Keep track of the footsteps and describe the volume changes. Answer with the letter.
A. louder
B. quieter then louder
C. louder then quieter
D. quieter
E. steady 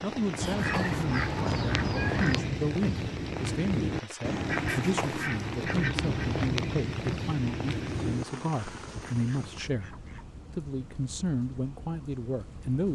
E.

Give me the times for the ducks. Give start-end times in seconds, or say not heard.
0.4-2.4, 4.5-6.1, 8.7-10.3.